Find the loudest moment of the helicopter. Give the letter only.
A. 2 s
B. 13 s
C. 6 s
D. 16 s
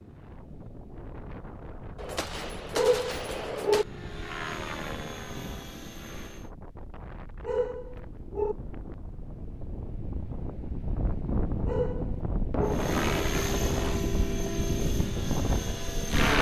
D.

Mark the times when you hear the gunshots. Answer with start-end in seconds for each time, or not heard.
1.9-3.9.